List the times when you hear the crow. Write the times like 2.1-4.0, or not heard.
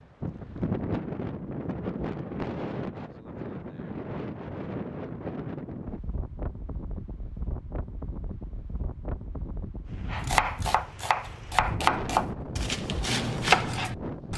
not heard.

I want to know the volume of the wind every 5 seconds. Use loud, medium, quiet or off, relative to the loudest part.
loud, medium, loud.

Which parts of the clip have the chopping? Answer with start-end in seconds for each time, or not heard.
10.1-14.3.